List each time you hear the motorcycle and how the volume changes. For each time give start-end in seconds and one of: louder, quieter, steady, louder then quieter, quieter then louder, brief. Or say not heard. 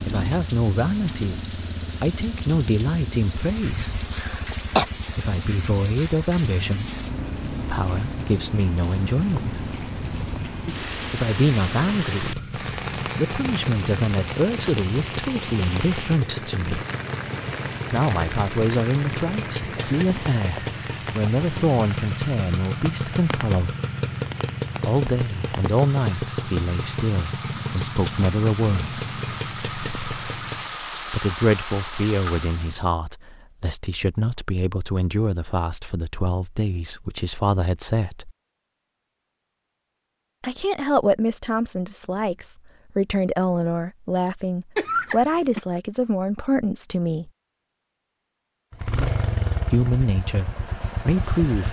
0.0-30.8 louder
48.7-51.6 brief.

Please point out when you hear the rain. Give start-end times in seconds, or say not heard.
0.0-32.9.